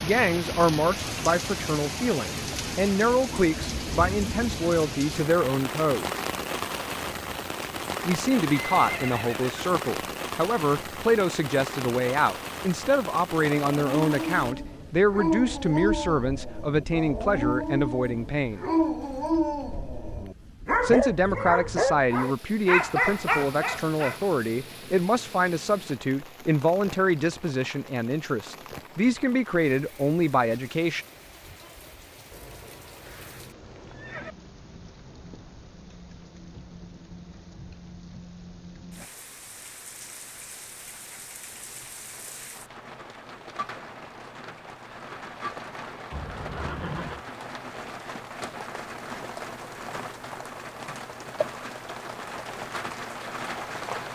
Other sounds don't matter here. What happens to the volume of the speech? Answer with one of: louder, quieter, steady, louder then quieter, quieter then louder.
steady.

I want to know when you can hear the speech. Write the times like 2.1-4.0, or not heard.
0.0-6.2, 8.1-18.6, 20.8-31.1.